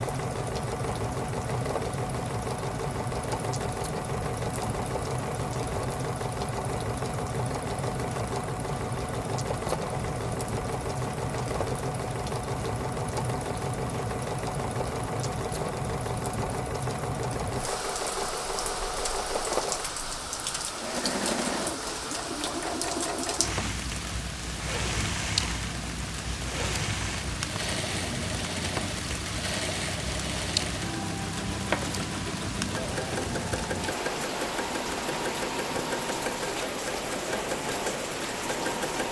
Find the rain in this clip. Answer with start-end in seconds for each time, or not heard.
0.0-39.0.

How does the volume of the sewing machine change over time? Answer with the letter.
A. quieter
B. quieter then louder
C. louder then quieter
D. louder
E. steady
E.